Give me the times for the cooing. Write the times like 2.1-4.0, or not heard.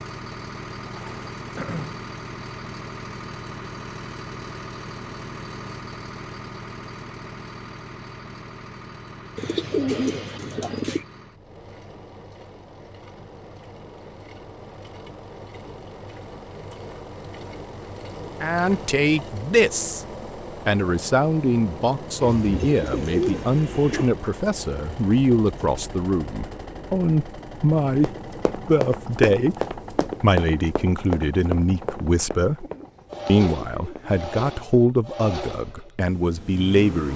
0.8-2.0, 9.3-11.1, 22.2-24.1, 32.5-34.2.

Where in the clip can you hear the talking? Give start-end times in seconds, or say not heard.
18.4-20.0, 20.6-32.6, 33.2-37.1.